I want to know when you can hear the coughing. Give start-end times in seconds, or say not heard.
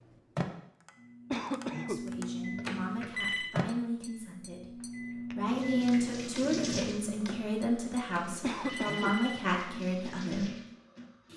1.3-2.0, 8.4-9.2.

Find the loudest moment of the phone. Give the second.
3 s.